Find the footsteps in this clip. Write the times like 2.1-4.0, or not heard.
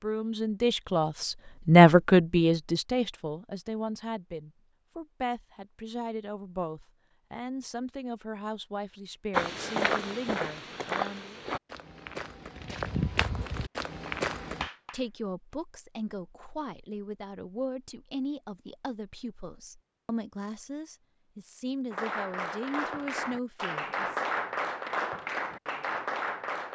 9.3-14.7.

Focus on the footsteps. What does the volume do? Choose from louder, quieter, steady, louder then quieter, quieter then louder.
quieter then louder.